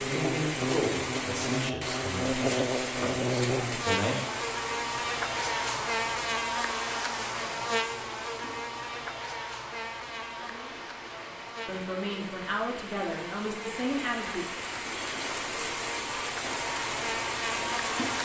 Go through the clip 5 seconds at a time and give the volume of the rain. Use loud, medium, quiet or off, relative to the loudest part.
loud, medium, medium, loud.